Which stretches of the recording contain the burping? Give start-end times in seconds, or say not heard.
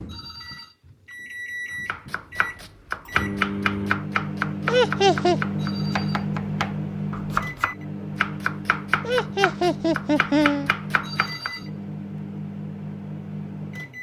not heard.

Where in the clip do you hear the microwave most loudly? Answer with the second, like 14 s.
6 s.